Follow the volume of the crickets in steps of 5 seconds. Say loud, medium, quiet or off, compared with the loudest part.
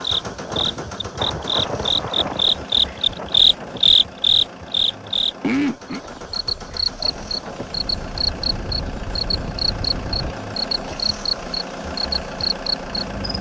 loud, medium, medium.